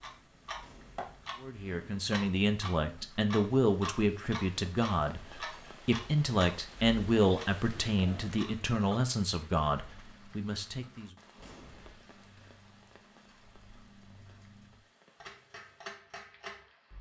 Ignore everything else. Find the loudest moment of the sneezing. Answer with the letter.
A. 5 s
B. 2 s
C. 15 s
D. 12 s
D.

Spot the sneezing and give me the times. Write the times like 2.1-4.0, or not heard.
0.6-1.1, 11.3-12.0.